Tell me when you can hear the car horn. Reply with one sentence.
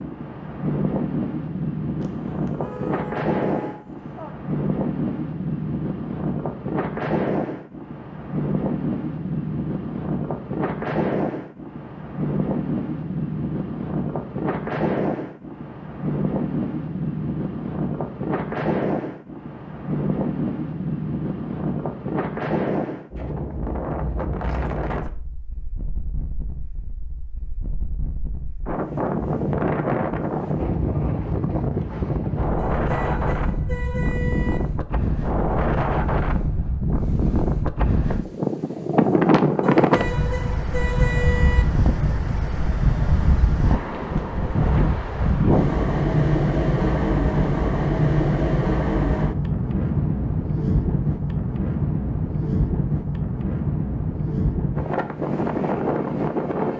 The car horn can be heard from 2.0 to 4.3 s, from 32.5 to 34.6 s and from 39.6 to 41.6 s.